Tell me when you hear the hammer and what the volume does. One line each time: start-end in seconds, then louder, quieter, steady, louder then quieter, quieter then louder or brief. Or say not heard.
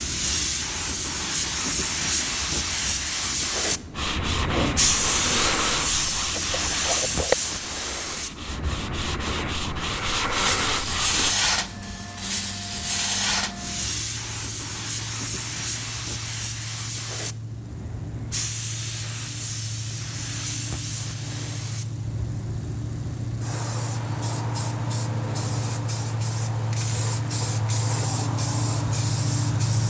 not heard.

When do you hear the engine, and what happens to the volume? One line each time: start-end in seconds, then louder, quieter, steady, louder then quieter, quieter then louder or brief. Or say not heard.
11.6-29.8 louder.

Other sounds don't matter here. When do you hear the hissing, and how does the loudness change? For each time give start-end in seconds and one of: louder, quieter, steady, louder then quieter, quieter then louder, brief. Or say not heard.
0.0-29.8 quieter.